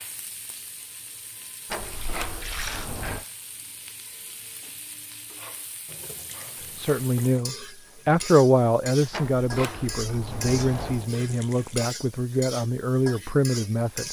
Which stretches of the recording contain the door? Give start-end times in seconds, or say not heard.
1.6-3.2, 9.1-11.1.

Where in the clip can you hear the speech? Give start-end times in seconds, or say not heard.
6.8-14.0.